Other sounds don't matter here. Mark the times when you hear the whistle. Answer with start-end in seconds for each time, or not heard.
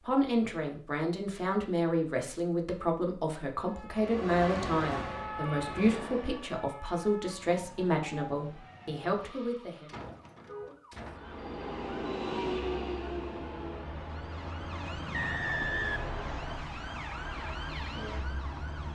15.1-16.6.